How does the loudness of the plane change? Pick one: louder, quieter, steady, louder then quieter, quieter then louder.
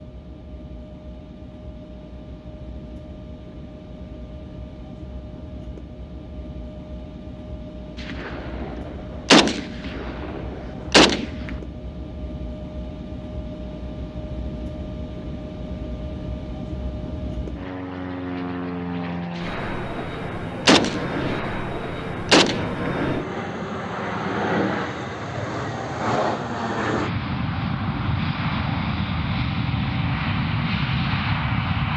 louder.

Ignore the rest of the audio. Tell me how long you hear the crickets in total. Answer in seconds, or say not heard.
not heard.